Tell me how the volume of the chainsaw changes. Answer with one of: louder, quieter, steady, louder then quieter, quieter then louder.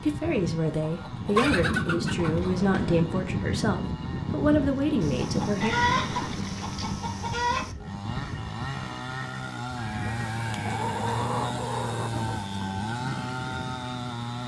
louder.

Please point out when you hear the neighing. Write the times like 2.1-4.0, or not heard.
2.1-3.1, 5.6-7.0, 9.8-11.1.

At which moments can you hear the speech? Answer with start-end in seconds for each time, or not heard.
0.0-5.8.